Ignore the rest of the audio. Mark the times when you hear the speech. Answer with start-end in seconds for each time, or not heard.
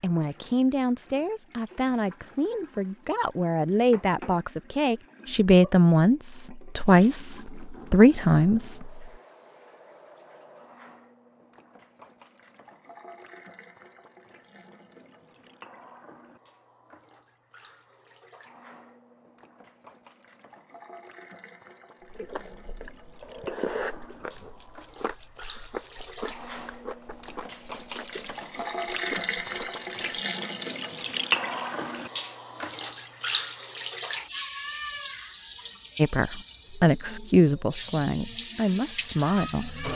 0.0-9.1, 36.0-39.9.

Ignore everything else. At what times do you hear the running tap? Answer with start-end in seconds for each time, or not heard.
0.0-39.9.